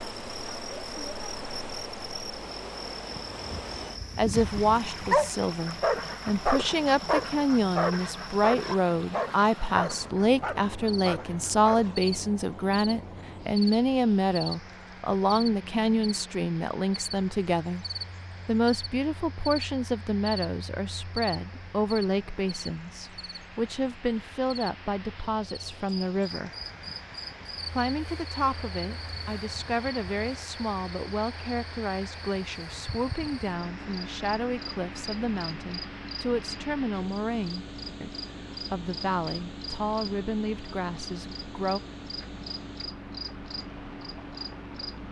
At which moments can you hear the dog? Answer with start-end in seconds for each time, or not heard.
3.1-12.1.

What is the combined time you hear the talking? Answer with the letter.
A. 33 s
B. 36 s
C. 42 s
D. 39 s
B.